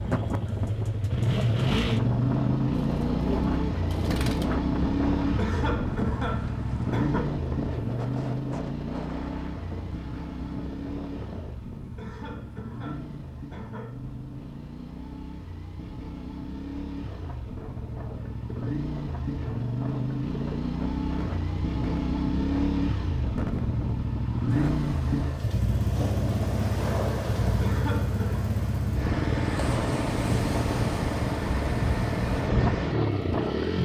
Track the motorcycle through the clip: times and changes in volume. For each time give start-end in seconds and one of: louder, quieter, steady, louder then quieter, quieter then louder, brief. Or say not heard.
0.0-33.7 quieter then louder.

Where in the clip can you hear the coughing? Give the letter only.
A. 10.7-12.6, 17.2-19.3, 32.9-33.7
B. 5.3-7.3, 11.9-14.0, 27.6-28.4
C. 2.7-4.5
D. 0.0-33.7
B.